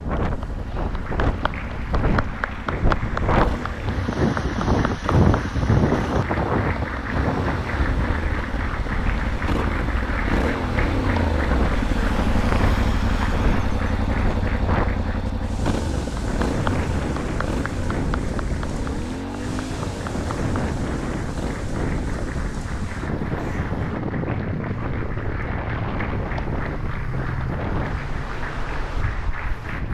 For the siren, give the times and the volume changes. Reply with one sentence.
You can't hear the siren here.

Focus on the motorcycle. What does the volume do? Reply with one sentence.
The loudness of the motorcycle goes up, then down.